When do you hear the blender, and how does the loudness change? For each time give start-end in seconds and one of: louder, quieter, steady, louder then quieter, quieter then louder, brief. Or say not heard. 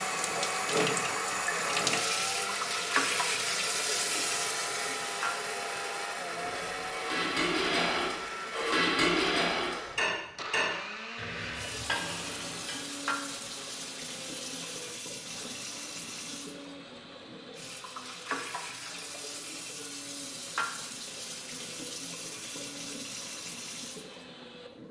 0.0-24.7 quieter.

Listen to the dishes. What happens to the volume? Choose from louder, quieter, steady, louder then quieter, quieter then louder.
quieter.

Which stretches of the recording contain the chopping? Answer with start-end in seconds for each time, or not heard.
not heard.